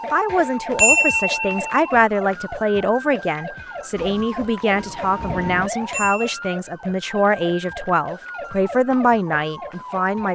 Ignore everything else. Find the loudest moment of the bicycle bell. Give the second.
1 s.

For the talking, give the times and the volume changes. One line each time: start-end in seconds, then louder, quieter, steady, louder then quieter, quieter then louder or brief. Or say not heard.
0.0-10.3 steady.